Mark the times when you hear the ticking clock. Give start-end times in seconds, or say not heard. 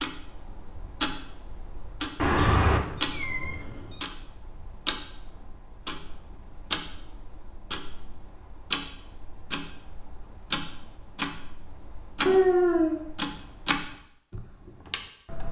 0.0-15.4.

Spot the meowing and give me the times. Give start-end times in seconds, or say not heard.
2.2-4.0, 12.2-13.0.